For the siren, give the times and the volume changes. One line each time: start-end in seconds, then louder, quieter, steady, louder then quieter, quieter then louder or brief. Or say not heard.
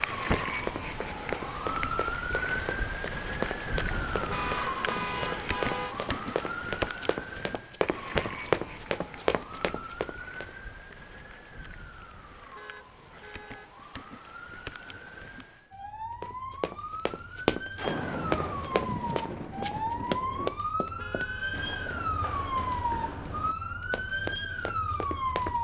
0.0-25.5 quieter then louder.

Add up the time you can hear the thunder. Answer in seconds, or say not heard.
6 s.